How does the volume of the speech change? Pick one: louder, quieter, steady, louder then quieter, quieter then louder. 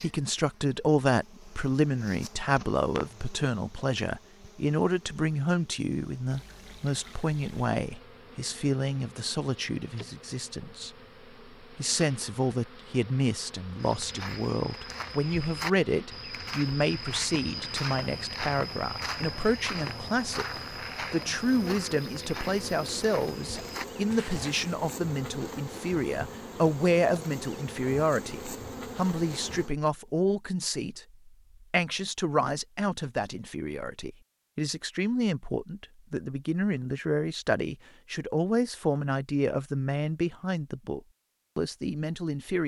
steady.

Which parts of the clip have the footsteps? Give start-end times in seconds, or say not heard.
13.8-24.7.